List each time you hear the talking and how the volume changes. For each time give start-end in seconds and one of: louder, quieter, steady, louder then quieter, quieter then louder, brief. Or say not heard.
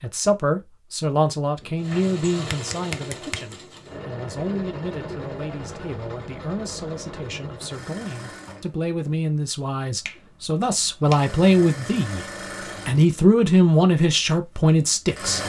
0.0-12.2 quieter then louder
12.8-15.4 brief.